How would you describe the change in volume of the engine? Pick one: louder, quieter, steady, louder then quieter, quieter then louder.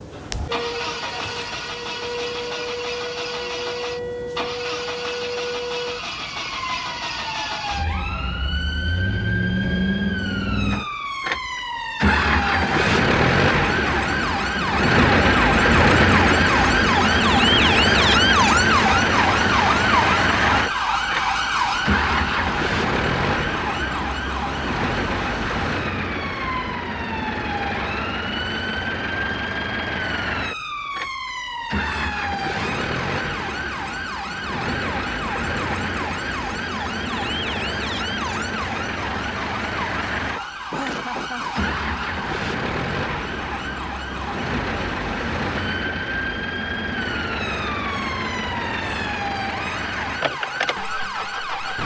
louder then quieter.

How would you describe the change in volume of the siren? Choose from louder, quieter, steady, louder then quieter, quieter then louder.
louder then quieter.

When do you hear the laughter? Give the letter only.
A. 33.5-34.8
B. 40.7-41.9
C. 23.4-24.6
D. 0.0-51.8
B.